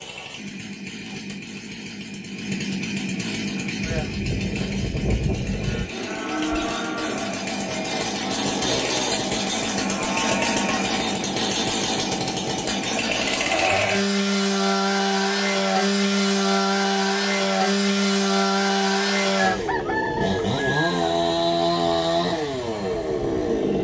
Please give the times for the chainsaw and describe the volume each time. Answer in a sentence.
The chainsaw can be heard from 0.0 to 23.7 s, getting louder.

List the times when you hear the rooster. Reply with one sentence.
The rooster can be heard from 19.4 to 20.9 s.